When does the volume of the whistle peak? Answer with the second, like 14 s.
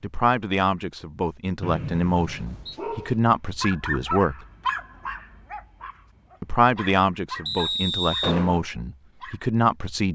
8 s.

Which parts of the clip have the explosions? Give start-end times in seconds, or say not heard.
8.2-8.7.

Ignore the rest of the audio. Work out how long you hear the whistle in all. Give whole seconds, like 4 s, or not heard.
2 s.